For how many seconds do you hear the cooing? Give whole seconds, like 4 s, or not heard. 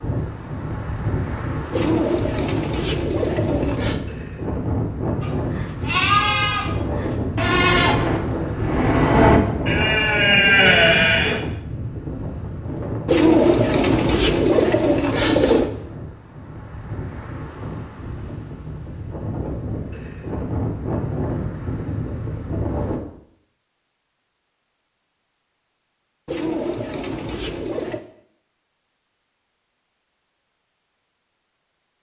7 s.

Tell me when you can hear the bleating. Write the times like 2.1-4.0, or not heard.
5.2-11.4.